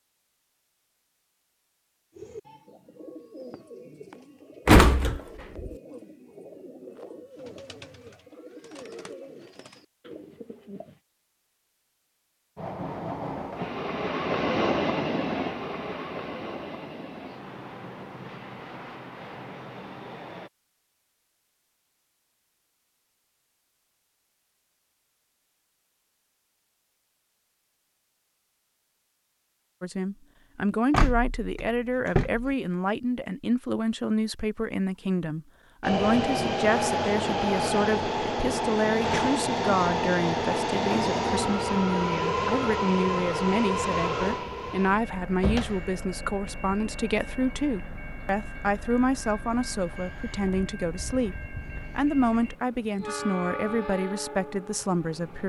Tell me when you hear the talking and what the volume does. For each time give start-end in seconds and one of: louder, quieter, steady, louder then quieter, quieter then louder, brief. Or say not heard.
29.8-55.4 steady.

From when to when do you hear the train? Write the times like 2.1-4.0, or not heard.
12.6-20.5, 35.8-55.4.